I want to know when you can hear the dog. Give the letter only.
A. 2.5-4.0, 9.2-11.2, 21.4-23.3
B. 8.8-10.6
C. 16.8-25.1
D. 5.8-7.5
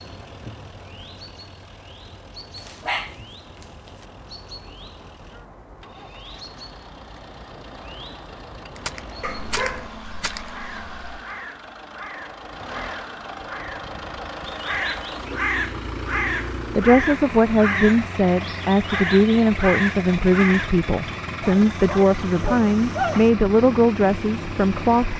A.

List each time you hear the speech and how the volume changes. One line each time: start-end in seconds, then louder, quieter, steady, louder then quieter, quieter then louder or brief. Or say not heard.
16.8-25.1 steady.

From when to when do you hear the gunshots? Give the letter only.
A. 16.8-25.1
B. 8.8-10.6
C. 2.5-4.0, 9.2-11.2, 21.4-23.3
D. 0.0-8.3
B.